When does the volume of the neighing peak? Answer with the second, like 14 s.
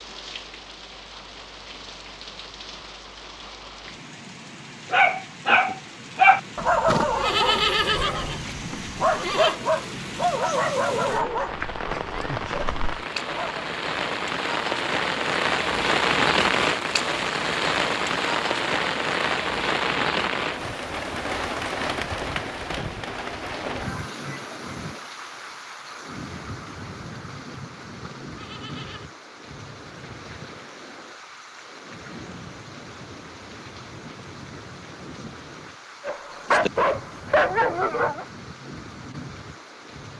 8 s.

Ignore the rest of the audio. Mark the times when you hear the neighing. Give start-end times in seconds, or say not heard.
6.8-9.6, 28.0-29.1.